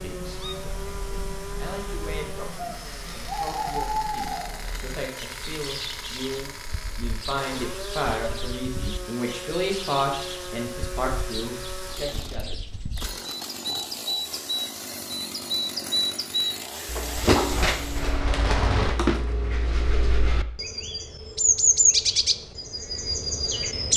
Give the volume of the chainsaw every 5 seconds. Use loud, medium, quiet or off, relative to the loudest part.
loud, loud, loud, loud, off.